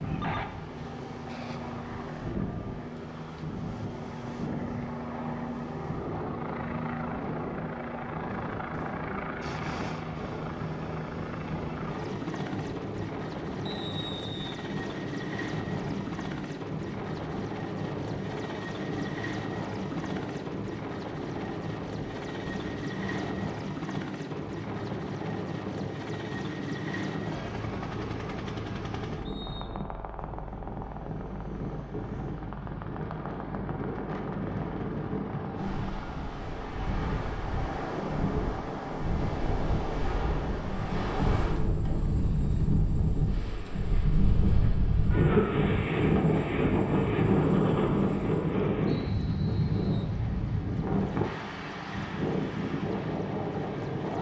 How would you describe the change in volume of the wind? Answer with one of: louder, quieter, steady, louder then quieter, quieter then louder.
louder.